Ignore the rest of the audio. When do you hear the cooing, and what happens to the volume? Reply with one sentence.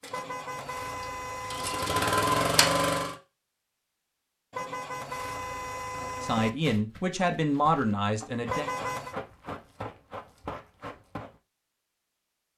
You can't hear the cooing here.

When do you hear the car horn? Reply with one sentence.
The car horn can be heard from 0.1 to 2.0 s, from 4.5 to 6.5 s and from 8.4 to 9.2 s.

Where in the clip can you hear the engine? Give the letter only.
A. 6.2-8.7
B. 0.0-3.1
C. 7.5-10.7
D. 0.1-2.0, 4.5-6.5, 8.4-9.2
B.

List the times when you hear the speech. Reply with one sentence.
The speech can be heard from 6.2 to 8.7 s.